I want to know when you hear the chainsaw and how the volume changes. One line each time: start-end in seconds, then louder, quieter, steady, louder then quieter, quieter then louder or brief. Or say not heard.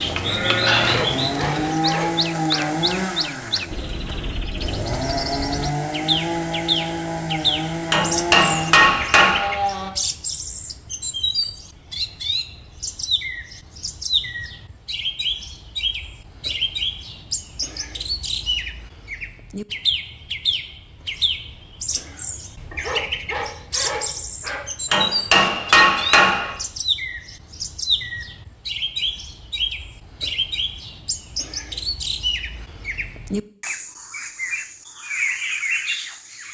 0.0-9.9 steady.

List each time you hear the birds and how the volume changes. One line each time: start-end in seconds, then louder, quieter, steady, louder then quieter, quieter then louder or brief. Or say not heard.
0.2-36.4 steady.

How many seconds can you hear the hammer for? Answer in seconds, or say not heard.
3 s.